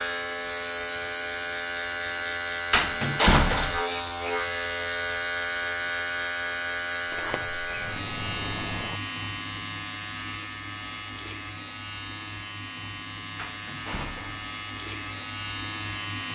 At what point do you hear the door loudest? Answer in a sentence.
The volume of the door peaks at 3 seconds.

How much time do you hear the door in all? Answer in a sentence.
You can hear the door for 4 seconds altogether.